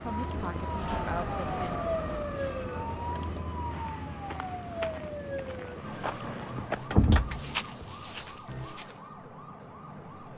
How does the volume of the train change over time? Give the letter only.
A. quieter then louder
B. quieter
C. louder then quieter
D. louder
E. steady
B.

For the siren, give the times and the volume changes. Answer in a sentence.
The siren can be heard from 0.0 to 10.3 s, getting quieter.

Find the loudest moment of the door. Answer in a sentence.
The volume of the door peaks at 7 seconds.